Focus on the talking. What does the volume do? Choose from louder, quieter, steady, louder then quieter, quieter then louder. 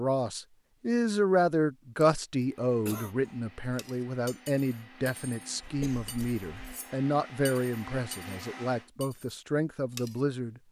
quieter.